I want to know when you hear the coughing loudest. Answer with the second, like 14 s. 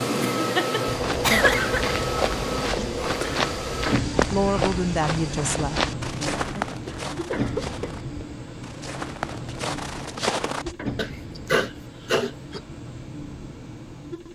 1 s.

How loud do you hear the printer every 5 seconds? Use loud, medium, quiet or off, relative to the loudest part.
loud, medium, medium.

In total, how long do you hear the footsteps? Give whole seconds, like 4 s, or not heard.
10 s.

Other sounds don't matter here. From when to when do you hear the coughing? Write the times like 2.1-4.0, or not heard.
0.3-2.0, 6.8-8.0, 10.9-12.6.